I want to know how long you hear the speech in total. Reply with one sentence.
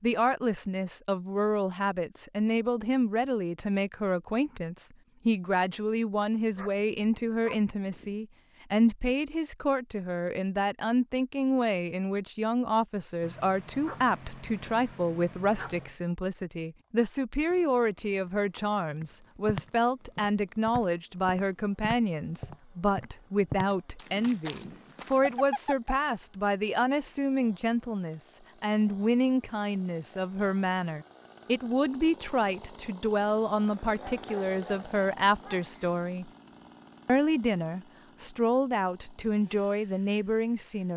You can hear the speech for 40 seconds altogether.